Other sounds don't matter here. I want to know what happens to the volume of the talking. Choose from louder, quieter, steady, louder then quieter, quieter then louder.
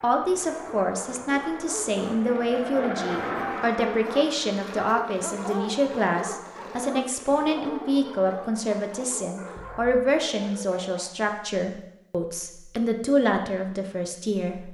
steady.